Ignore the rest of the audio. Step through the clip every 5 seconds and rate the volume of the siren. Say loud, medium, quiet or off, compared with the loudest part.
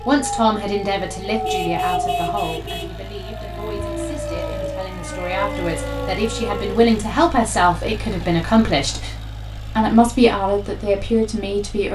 loud, loud, off.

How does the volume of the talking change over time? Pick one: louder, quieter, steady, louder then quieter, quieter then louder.
quieter then louder.